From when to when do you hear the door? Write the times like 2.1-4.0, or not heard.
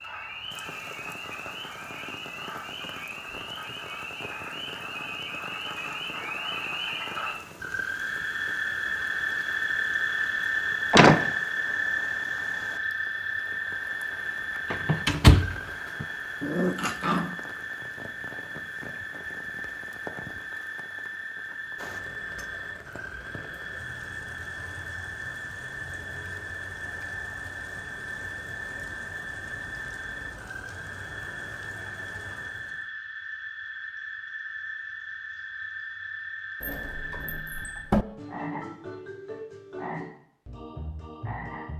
10.9-11.3, 14.7-16.1, 36.6-38.0.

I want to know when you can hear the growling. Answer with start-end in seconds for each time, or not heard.
16.4-17.4.